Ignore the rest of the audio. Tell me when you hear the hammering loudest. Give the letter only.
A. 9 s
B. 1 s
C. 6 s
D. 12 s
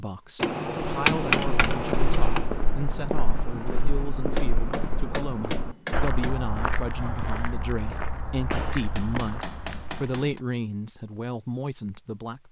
B.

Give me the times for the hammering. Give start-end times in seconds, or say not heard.
0.4-2.5, 4.3-6.4, 8.5-10.4.